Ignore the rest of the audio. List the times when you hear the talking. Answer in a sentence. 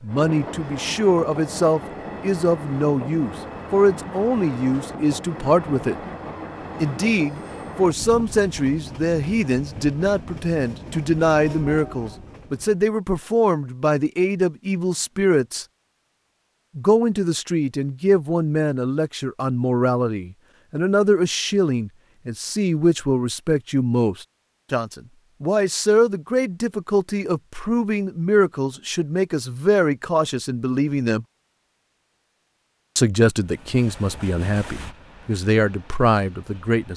The talking can be heard from 0.0 to 6.0 s, from 6.8 to 15.7 s, from 16.8 to 31.2 s and from 33.0 to 36.9 s.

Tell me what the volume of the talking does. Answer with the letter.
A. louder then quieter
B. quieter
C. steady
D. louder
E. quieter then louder
C.